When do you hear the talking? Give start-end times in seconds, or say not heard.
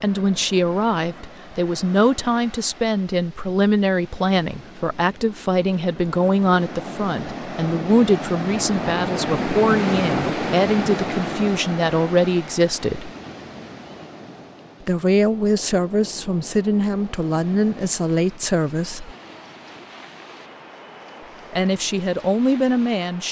0.0-13.1, 14.8-19.1, 21.5-23.2.